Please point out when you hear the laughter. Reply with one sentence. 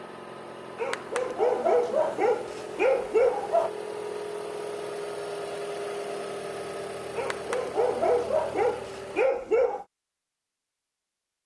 You can't hear the laughter here.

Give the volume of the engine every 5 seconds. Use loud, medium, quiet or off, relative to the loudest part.
loud, loud, off.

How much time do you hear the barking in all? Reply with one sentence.
The barking can be heard for 6 seconds in total.